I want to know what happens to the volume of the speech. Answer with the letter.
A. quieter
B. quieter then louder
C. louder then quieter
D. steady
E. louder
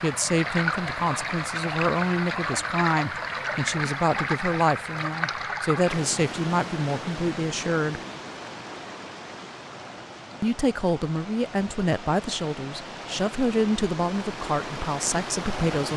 D.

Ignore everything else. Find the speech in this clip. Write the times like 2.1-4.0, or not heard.
0.0-8.0, 10.4-15.9.